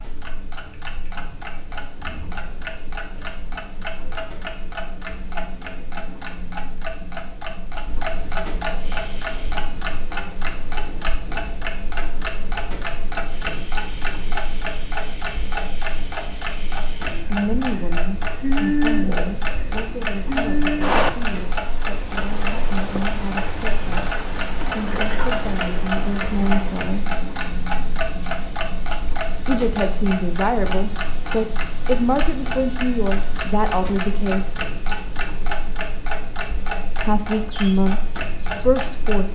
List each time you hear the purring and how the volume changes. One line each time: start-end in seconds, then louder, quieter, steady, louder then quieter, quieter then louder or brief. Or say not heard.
not heard.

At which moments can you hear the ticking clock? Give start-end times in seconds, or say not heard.
0.0-39.2.